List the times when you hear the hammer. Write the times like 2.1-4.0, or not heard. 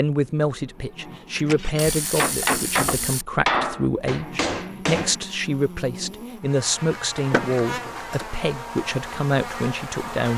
2.1-5.2.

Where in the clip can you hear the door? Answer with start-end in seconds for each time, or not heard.
1.4-2.4, 7.2-8.2.